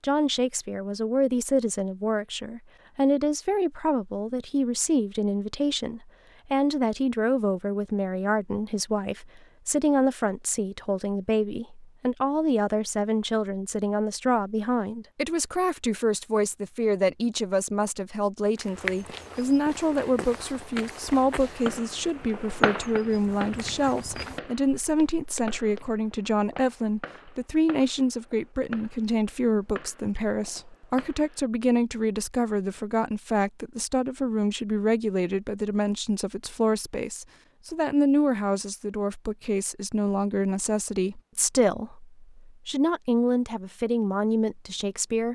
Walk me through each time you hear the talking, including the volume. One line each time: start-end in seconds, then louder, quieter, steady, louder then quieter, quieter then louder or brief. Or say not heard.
0.0-45.3 steady.